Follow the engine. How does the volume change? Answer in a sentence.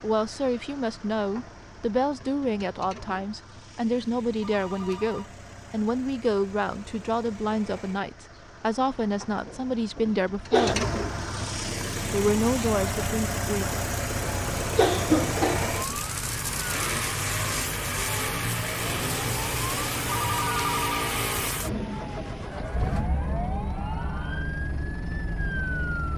The loudness of the engine goes up.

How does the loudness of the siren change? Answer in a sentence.
The loudness of the siren stays about the same.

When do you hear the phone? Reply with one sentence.
The phone can be heard from 4.4 to 5.3 s and from 20.1 to 21.1 s.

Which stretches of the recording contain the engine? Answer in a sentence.
The engine can be heard from 0.0 to 26.1 s.